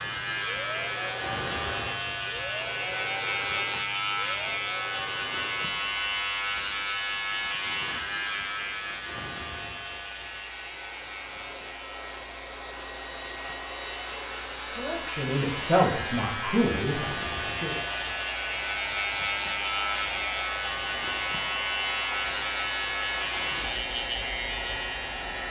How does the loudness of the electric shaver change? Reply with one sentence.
The loudness of the electric shaver goes down, then up.